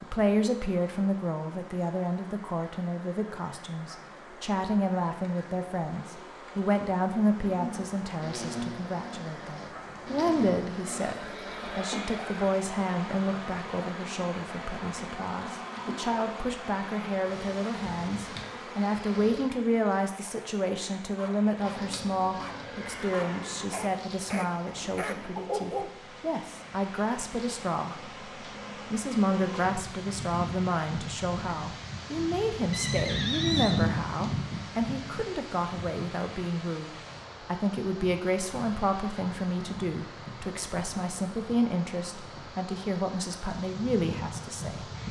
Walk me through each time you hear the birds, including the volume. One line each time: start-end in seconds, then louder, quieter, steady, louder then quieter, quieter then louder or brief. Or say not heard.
not heard.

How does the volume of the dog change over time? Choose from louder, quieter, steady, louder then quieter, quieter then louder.
louder.